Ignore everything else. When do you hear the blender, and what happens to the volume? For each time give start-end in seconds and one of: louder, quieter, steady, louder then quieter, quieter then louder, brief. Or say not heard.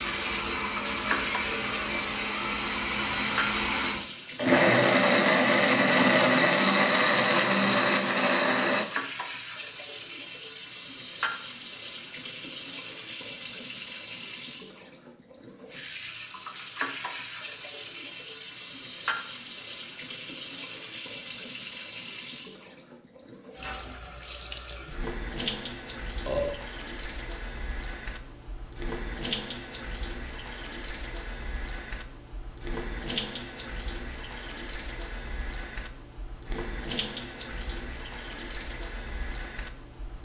0.0-8.8 louder.